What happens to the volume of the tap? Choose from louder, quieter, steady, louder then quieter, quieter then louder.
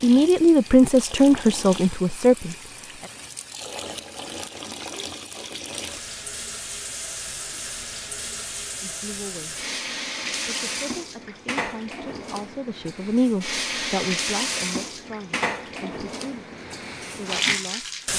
louder.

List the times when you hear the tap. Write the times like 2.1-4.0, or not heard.
0.0-18.1.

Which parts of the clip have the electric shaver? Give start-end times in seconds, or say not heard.
not heard.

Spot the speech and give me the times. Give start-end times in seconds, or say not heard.
0.0-3.1, 8.8-9.6, 10.3-18.1.